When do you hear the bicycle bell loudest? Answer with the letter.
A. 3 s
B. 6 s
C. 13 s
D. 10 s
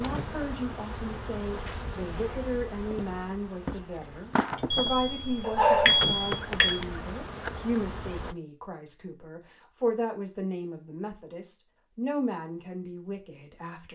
B.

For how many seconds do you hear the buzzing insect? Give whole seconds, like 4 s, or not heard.
8 s.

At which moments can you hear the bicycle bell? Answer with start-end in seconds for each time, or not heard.
4.7-6.8.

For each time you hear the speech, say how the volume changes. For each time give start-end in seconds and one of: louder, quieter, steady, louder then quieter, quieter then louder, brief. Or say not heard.
0.0-13.9 steady.